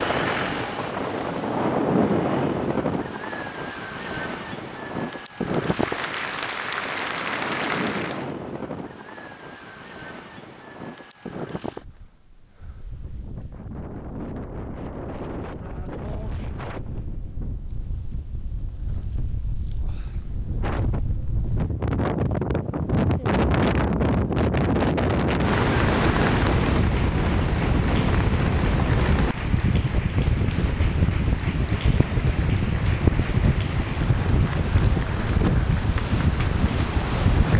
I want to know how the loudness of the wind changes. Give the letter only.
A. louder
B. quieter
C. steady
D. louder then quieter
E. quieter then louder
E.